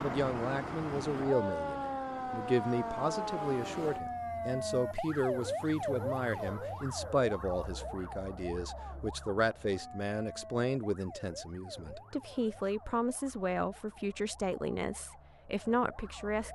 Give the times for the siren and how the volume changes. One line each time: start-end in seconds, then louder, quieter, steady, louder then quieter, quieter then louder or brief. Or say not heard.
0.0-16.4 quieter.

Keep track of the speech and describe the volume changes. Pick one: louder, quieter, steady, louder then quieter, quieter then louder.
steady.